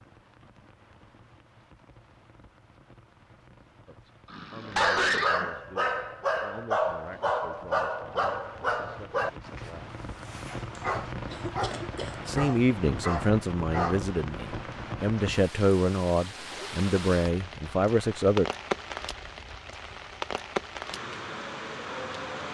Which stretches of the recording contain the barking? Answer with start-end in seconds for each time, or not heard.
4.7-14.1.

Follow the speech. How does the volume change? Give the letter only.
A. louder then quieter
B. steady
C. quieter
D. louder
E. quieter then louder
D.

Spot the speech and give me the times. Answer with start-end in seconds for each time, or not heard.
3.9-9.9, 12.2-18.4.